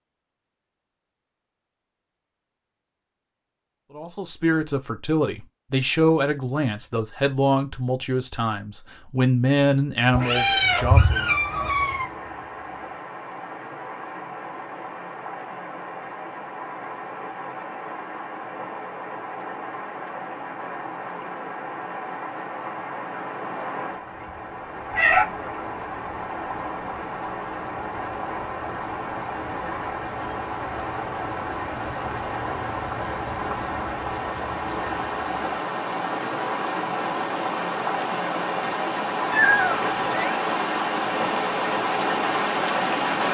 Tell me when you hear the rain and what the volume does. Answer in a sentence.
The rain can be heard from 10.7 to 43.2 s, getting louder.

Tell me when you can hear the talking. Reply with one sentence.
You can hear the talking from 4.0 to 11.2 s.